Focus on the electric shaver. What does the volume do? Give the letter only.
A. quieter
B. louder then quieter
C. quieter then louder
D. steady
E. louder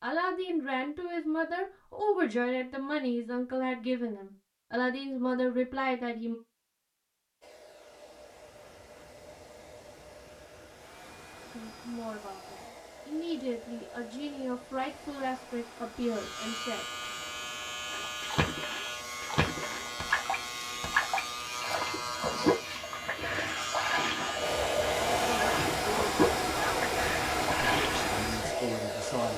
D.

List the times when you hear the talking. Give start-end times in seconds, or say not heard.
0.0-6.3, 11.5-16.9, 25.1-29.3.